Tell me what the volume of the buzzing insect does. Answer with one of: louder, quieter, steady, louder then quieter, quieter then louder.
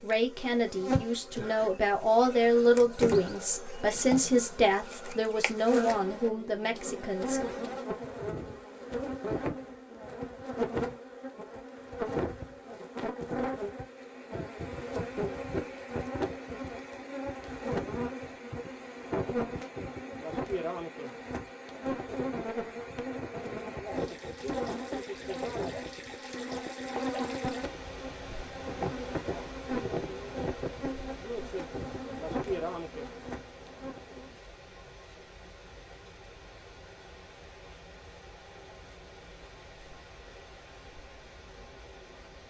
steady.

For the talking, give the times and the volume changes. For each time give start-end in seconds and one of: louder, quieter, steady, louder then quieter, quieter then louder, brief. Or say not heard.
0.0-7.4 louder then quieter.